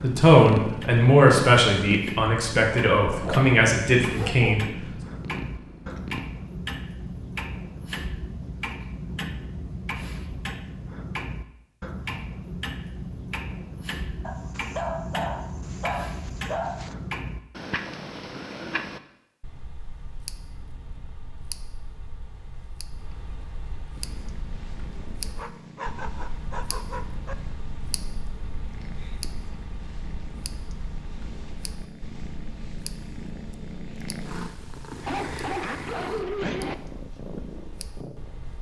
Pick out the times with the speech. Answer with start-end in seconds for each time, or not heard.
0.0-4.7.